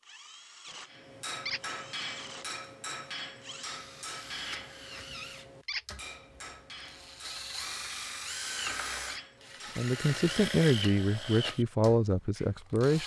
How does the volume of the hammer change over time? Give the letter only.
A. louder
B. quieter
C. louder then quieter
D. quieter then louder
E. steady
B.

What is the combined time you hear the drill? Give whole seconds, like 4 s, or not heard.
13 s.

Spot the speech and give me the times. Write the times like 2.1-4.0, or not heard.
9.8-13.0.